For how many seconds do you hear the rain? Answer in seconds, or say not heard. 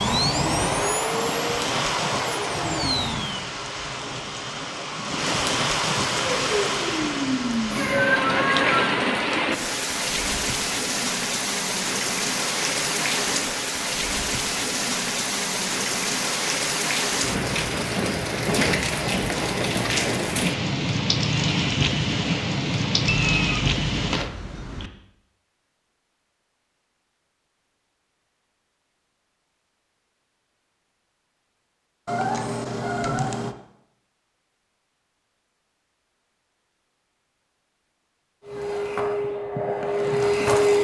24 s.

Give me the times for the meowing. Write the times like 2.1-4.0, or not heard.
7.8-9.0, 23.1-24.9, 32.0-33.5.